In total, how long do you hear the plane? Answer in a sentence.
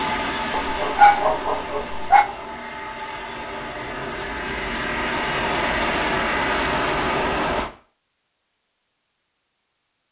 The plane can be heard for 8 seconds in total.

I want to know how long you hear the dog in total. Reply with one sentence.
The dog can be heard for 2 seconds in total.